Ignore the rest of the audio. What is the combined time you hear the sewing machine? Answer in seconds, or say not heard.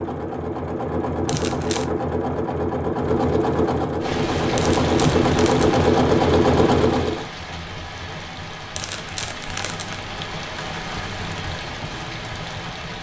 7 s.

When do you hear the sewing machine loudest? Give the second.
6 s.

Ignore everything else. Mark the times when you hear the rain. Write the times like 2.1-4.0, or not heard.
4.0-12.9.